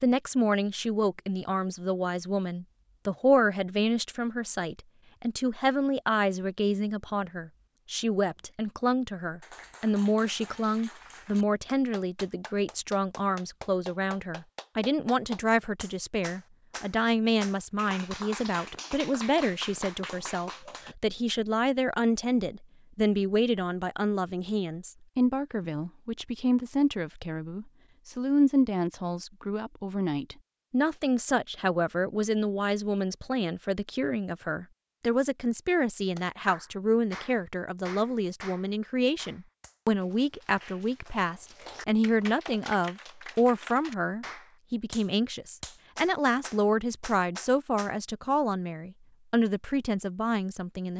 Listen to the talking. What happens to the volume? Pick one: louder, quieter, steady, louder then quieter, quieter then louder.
steady.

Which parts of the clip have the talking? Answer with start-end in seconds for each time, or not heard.
0.0-50.9.